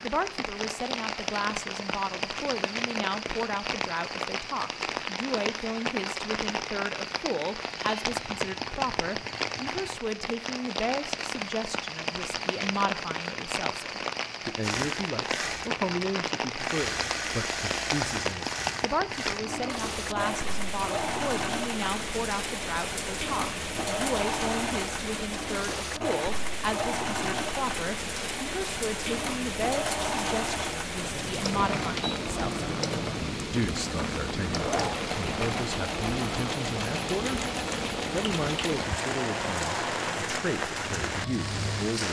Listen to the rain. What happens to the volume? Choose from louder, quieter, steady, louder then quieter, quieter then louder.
steady.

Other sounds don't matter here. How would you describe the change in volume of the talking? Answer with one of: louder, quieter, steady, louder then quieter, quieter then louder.
steady.